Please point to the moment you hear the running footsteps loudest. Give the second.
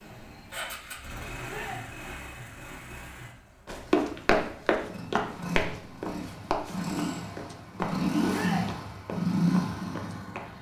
4 s.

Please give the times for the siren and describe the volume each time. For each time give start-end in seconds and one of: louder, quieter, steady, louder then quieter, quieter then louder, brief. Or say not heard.
not heard.